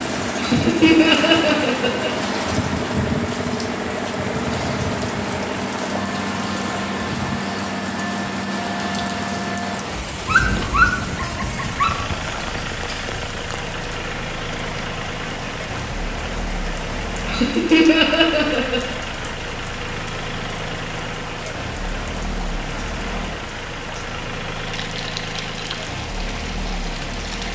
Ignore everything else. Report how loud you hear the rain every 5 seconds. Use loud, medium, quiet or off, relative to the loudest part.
loud, loud, medium, medium, medium, medium.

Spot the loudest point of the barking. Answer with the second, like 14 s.
11 s.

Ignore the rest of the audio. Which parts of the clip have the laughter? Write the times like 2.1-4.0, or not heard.
0.3-2.1, 17.2-18.8.